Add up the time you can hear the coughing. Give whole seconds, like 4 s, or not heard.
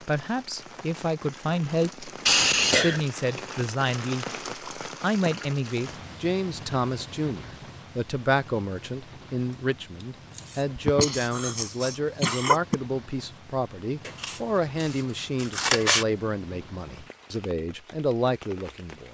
3 s.